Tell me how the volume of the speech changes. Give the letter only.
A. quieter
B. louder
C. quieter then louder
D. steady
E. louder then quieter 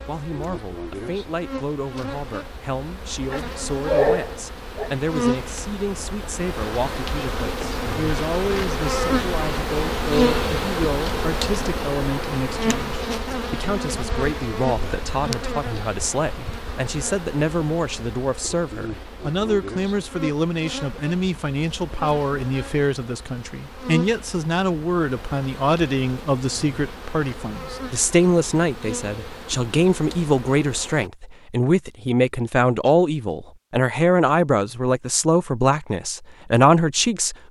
B.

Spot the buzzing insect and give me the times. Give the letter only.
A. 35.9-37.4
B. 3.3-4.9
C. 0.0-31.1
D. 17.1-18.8
C.